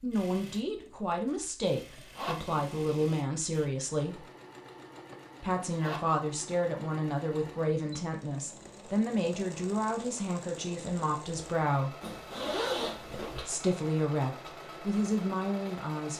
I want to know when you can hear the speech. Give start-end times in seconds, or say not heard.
0.0-4.2, 5.4-11.9, 13.3-16.1.